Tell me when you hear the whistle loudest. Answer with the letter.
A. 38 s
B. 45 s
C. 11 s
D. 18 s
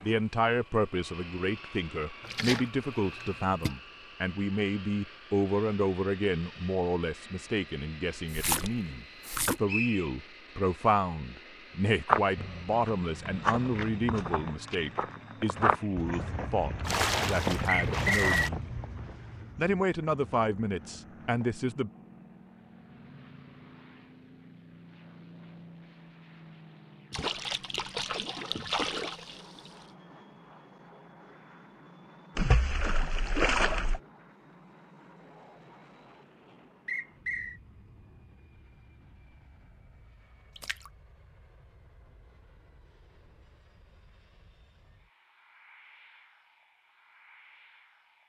D.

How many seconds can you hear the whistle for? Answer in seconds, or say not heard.
2 s.